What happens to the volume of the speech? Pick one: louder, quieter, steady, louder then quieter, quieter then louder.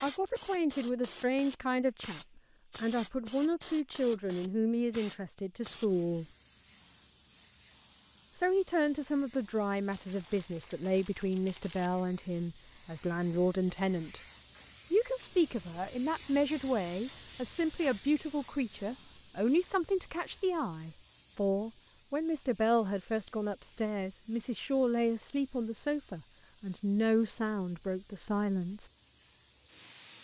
steady.